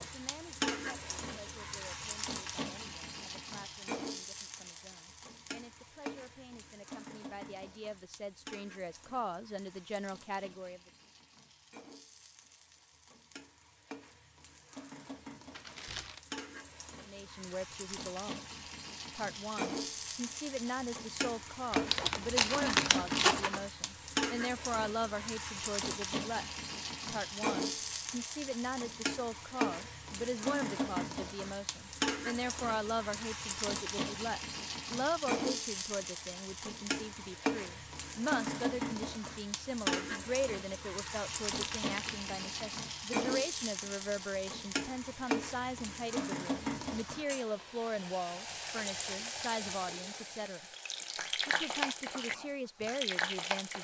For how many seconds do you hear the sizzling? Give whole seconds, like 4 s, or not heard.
54 s.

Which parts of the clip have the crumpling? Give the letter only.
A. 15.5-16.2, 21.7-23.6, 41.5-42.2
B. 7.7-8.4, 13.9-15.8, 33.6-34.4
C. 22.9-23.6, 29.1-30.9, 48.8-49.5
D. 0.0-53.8
A.